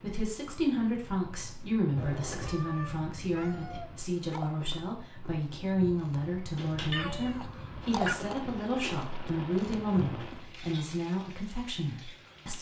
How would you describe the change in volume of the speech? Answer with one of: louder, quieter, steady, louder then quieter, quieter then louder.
steady.